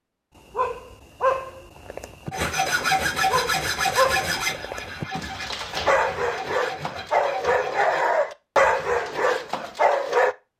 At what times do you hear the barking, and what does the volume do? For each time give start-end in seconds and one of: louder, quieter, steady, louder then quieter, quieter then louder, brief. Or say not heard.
0.3-10.3 louder.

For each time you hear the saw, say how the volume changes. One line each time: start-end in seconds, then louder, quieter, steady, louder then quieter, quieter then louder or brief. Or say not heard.
2.3-8.1 quieter.